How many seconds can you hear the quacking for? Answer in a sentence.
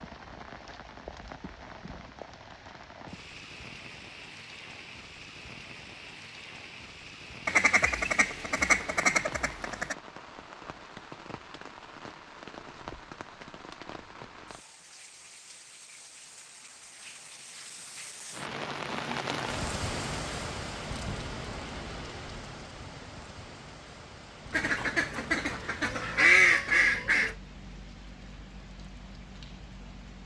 The quacking can be heard for 5 seconds in total.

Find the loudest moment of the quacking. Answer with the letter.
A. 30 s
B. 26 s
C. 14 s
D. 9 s
B.